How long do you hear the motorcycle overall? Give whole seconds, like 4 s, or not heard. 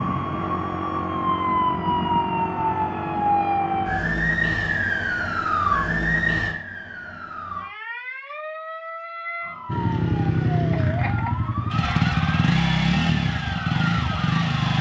5 s.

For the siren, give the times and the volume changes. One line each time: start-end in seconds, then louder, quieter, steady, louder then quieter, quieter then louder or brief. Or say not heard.
0.0-14.7 quieter.